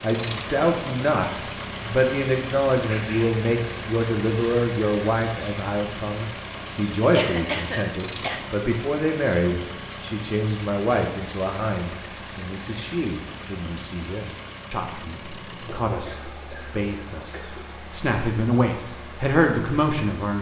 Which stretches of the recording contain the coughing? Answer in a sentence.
The coughing can be heard from 2.9 to 3.4 s, from 7.1 to 8.4 s and from 15.7 to 17.7 s.